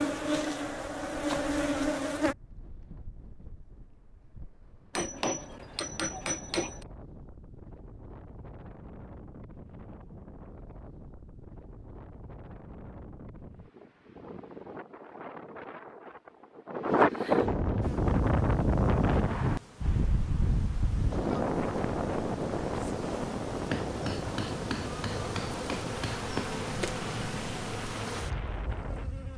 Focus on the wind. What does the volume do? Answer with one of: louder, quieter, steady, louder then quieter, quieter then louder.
louder then quieter.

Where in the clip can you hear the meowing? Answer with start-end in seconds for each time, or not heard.
not heard.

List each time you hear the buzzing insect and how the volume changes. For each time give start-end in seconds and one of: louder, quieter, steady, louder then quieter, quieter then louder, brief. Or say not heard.
0.0-2.4 brief
17.8-29.3 louder.